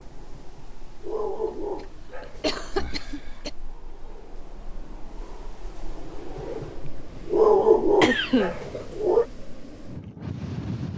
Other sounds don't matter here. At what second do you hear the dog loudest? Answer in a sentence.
The loudest moment of the dog is at 8 seconds.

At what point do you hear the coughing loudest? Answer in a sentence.
The volume of the coughing peaks at 8 seconds.